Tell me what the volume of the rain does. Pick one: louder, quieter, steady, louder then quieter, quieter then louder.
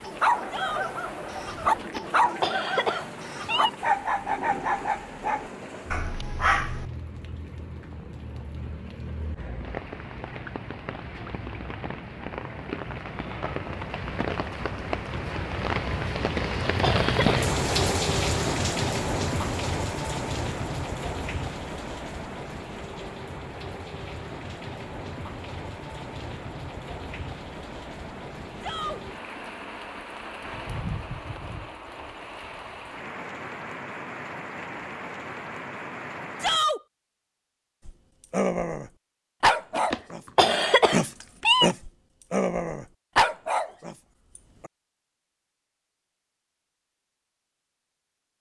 louder then quieter.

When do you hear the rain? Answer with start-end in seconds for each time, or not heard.
0.0-36.6.